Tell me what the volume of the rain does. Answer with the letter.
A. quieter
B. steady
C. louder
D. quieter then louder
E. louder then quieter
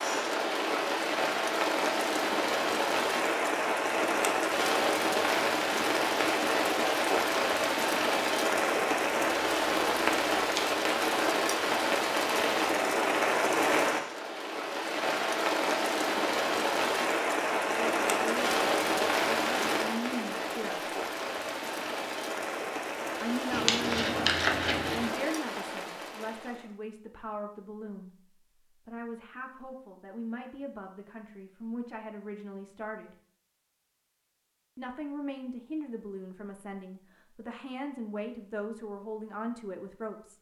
A.